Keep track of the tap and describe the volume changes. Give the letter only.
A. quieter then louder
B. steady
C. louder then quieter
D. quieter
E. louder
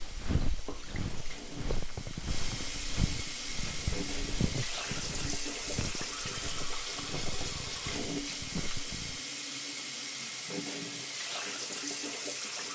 E.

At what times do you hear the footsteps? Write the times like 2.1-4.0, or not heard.
0.0-9.2.